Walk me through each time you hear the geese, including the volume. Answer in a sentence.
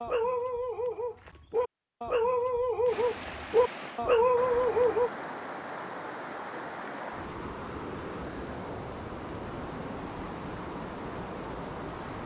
The geese can't be heard in this clip.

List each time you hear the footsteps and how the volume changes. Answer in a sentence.
You can't hear the footsteps here.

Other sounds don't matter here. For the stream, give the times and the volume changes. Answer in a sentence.
You can hear the stream from 2.9 to 12.2 s, at a steady volume.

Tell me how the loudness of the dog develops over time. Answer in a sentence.
The volume of the dog goes up.